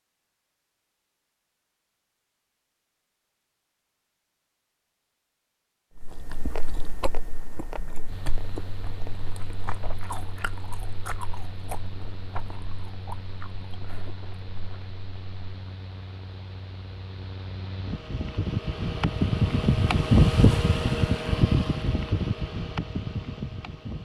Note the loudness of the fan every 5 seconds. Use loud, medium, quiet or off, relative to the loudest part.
off, quiet, quiet, medium, loud.